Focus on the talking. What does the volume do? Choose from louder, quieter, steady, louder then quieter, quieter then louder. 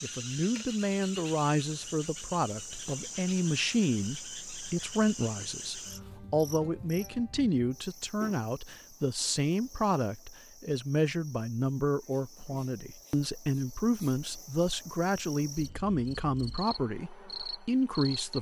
steady.